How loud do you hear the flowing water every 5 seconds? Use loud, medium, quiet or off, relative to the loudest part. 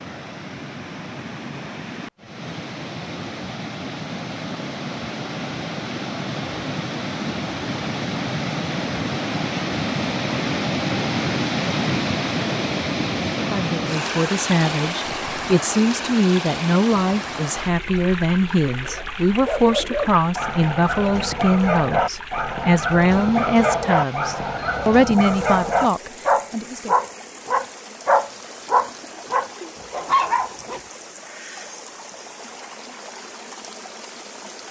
medium, loud, loud, medium, quiet, quiet, quiet.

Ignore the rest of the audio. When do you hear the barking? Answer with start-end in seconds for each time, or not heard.
18.9-30.6.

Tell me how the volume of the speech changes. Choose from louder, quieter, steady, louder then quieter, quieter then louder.
steady.